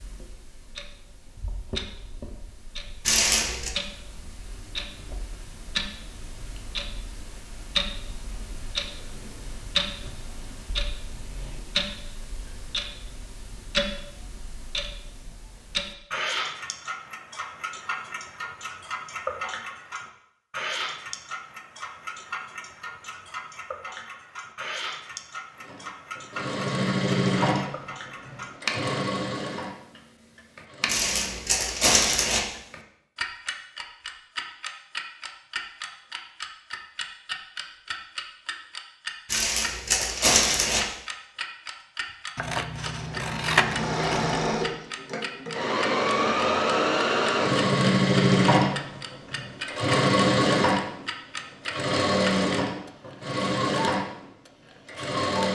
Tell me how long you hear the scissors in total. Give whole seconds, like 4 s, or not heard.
2 s.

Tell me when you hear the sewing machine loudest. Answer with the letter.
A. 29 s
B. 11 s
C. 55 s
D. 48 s
D.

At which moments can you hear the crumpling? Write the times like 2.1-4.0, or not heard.
3.0-3.7, 30.9-32.4, 39.2-40.8.